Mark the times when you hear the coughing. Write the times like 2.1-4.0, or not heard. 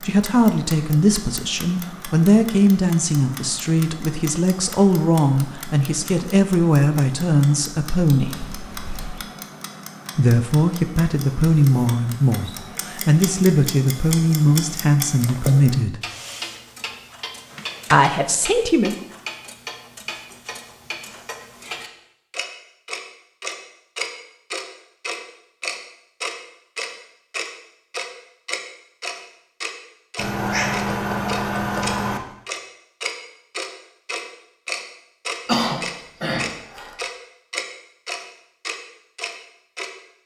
35.5-37.0.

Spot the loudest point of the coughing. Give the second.
36 s.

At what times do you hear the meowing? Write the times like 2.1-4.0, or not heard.
8.2-9.2, 30.1-32.2.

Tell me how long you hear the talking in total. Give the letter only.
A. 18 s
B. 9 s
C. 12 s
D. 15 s
D.